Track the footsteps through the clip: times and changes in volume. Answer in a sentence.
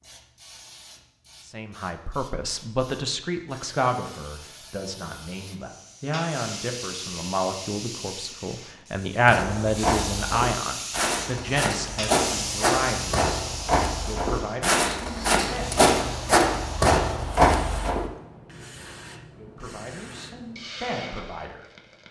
You can hear the footsteps from 9.2 to 18.1 s, getting louder.